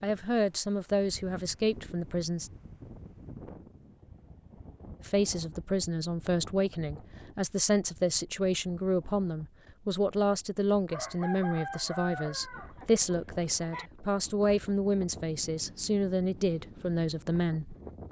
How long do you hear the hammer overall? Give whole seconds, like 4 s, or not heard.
not heard.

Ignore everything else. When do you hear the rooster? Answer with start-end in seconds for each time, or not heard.
10.9-13.9.